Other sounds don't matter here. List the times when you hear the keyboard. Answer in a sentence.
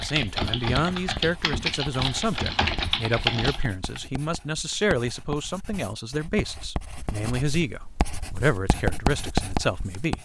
The keyboard can be heard from 0.0 to 4.0 s.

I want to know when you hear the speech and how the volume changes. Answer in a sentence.
The speech can be heard from 0.0 to 10.1 s, at a steady volume.